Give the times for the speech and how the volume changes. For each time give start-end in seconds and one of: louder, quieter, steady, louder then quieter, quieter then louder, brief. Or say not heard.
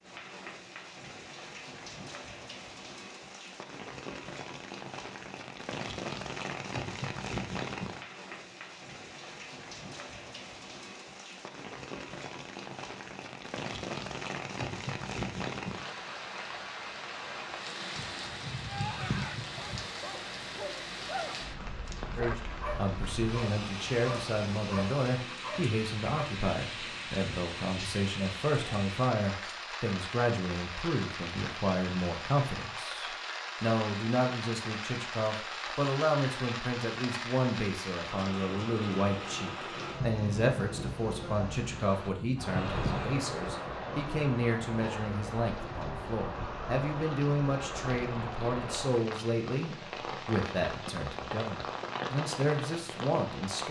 22.1-53.6 steady.